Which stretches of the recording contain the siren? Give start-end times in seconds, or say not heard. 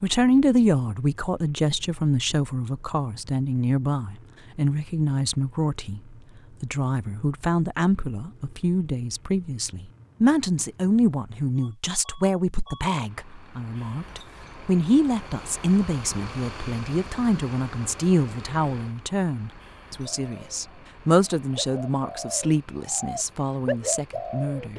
not heard.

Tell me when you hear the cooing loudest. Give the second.
24 s.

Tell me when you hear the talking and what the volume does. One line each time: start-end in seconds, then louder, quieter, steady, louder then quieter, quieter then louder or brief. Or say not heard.
0.0-24.7 steady.